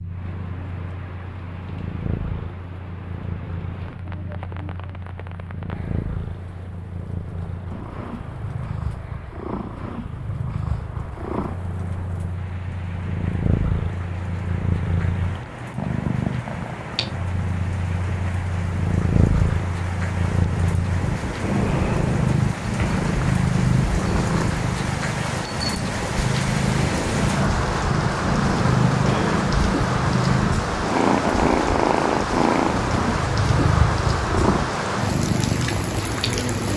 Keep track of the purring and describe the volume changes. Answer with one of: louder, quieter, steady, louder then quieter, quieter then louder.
louder.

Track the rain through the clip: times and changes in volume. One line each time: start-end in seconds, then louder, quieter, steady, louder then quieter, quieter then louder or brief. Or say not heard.
0.0-36.7 louder.